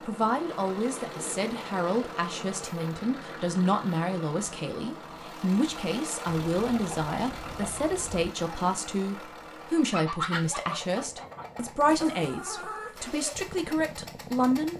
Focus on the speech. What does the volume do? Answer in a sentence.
The loudness of the speech stays about the same.